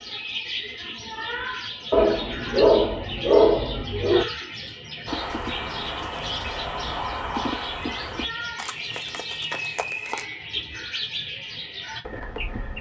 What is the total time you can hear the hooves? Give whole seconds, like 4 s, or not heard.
5 s.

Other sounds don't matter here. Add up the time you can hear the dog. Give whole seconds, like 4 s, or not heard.
2 s.